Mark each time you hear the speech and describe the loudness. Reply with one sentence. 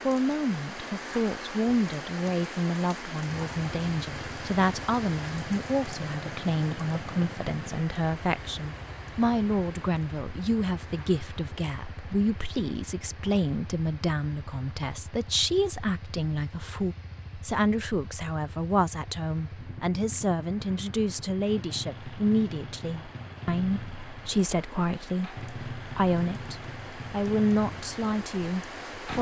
The speech can be heard from 0.1 to 29.1 s, at a steady volume.